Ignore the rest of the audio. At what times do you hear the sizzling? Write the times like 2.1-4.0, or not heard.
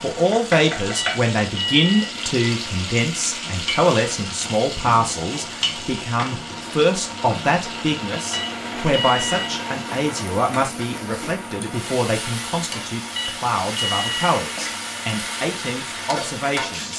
0.0-16.9.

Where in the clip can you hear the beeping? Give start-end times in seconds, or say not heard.
0.9-2.1, 8.3-9.6, 13.2-14.3.